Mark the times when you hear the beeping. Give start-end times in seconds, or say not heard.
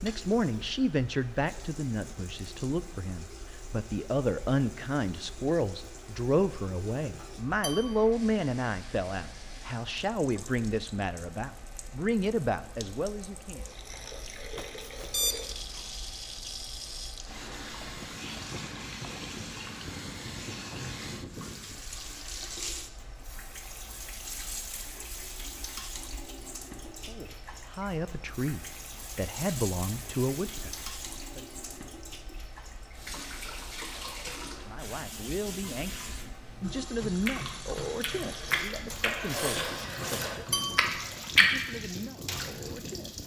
15.1-15.8.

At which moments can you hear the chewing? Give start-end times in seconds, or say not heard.
37.2-41.5.